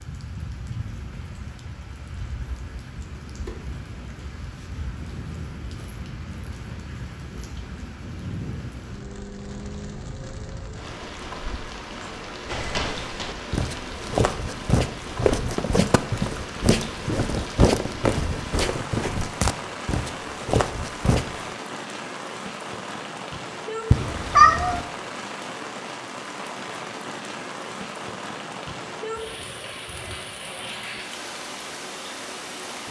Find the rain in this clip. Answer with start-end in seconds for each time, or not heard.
0.0-32.8.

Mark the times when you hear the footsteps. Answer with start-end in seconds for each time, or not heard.
12.4-21.5.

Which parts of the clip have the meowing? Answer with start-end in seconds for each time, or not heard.
23.9-24.9.